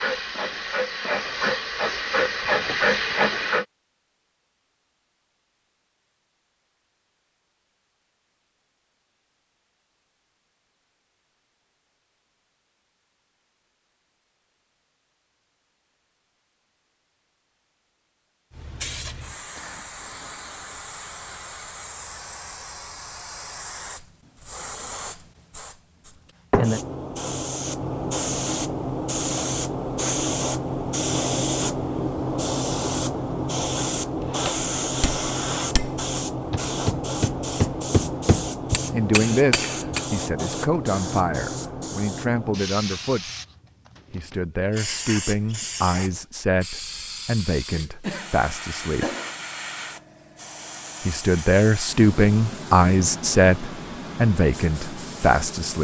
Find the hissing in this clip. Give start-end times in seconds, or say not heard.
0.0-3.6, 18.5-55.7.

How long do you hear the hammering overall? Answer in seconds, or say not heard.
6 s.